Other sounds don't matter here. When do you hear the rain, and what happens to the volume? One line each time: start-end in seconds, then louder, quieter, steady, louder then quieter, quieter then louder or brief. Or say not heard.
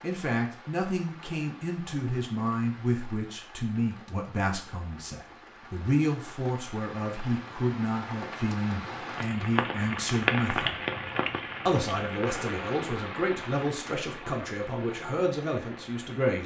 0.0-16.4 louder then quieter.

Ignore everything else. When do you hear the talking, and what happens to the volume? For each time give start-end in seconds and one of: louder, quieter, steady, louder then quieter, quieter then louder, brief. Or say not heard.
0.0-10.8 steady
11.7-16.4 steady.